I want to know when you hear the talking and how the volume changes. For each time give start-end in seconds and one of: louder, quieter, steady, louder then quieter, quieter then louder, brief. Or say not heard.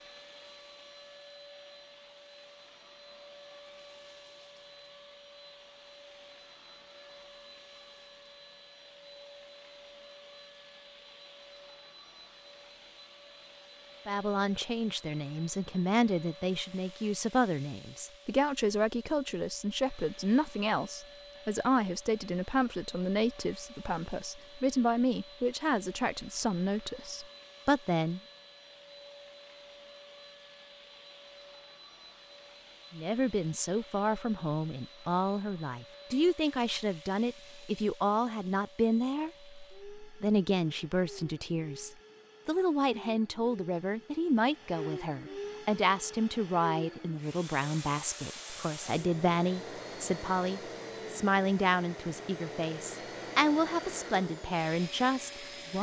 14.1-28.2 steady
32.9-55.7 steady.